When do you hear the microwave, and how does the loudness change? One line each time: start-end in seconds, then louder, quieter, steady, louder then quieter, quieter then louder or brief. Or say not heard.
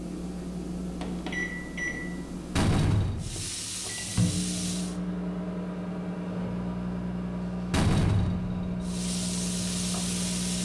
0.0-10.6 steady.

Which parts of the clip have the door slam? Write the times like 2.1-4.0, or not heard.
2.5-3.5, 7.7-8.8.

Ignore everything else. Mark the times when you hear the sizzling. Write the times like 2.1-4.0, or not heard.
3.1-5.0, 8.8-10.6.